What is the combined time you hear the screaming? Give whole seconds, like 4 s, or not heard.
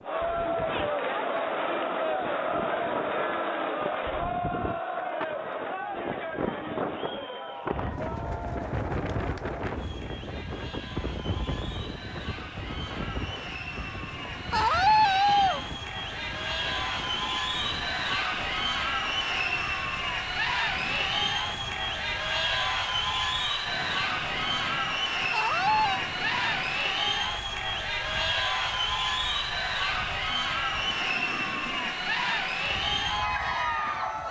2 s.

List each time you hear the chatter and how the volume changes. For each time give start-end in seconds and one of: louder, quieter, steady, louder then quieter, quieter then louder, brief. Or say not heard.
0.0-34.2 quieter then louder.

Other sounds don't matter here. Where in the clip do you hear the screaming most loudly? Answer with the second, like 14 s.
15 s.